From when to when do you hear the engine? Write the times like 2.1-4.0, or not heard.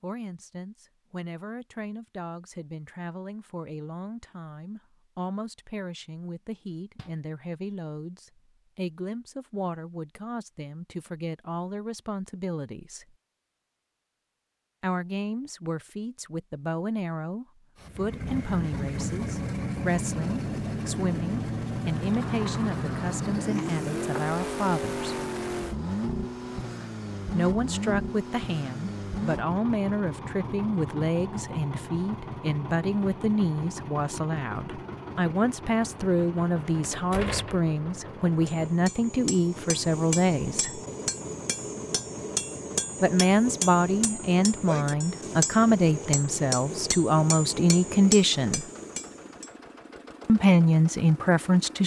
17.8-51.8.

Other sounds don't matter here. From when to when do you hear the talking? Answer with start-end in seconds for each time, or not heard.
0.0-13.1, 14.8-25.1, 27.3-40.8, 43.0-48.6, 50.2-51.8.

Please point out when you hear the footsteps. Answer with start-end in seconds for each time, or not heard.
not heard.